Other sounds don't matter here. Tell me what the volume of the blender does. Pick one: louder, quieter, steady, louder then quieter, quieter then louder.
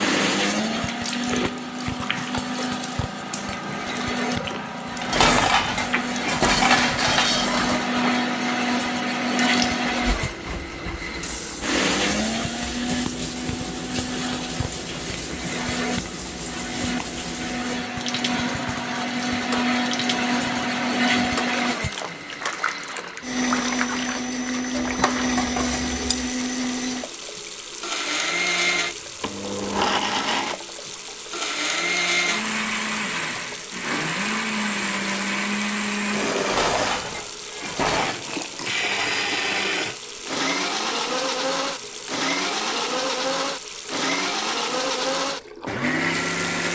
steady.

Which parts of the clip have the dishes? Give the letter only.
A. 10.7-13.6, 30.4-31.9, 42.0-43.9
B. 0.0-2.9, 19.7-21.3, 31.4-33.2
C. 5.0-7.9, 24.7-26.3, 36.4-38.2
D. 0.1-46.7
C.